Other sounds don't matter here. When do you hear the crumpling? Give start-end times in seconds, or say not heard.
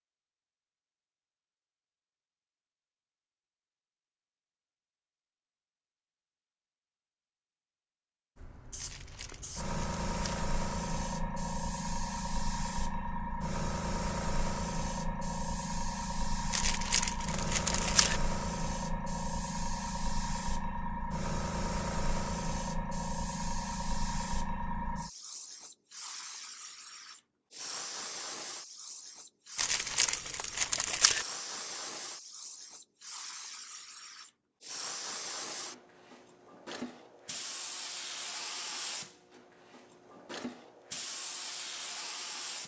8.8-10.4, 16.5-18.2, 29.6-31.2.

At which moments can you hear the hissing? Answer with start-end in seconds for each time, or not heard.
8.3-42.6.